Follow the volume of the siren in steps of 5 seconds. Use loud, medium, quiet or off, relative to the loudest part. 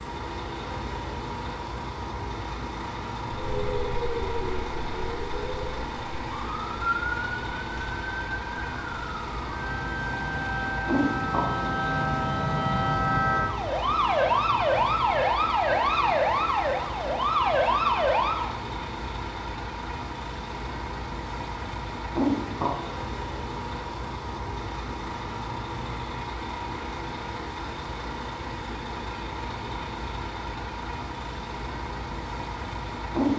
medium, medium, loud, loud, off, off, off.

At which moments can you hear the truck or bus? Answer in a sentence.
You can hear the truck or bus from 0.0 to 33.3 s.